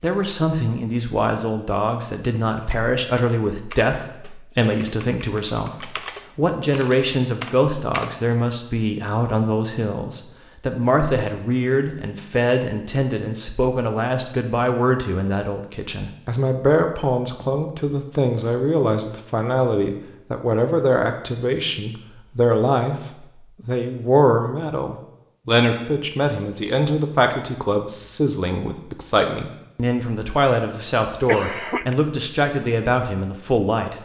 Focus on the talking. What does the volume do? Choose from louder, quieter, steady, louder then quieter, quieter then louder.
steady.